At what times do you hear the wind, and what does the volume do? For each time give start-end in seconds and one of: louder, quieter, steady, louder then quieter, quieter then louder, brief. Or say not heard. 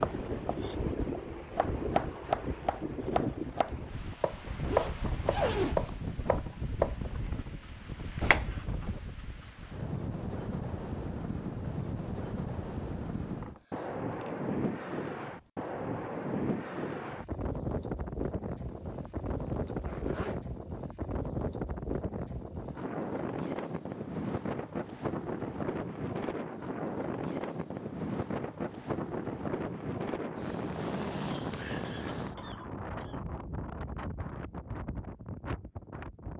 0.0-36.3 steady.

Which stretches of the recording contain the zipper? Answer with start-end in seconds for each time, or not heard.
4.6-6.0, 18.6-20.4, 30.6-31.6.